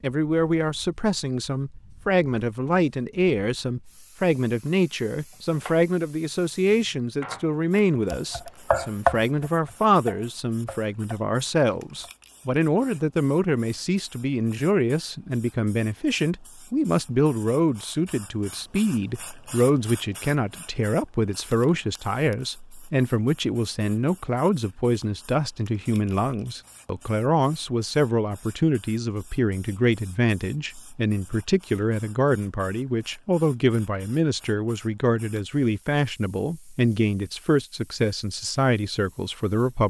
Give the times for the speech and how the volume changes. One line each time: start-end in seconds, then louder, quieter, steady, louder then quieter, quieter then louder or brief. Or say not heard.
0.0-39.8 steady.